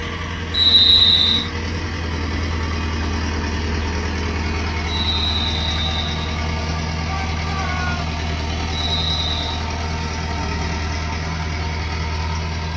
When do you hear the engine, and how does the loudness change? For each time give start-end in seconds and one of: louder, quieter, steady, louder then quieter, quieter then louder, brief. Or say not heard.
0.0-12.7 steady.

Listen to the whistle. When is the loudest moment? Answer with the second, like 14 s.
1 s.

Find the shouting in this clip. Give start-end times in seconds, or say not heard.
7.0-8.1.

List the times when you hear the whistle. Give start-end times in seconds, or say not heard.
0.5-1.5, 4.8-6.3, 8.7-9.7.